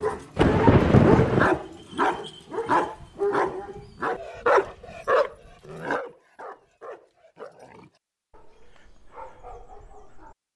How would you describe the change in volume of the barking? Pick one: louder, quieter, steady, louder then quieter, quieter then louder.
quieter.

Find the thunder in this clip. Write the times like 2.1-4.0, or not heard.
0.3-1.5.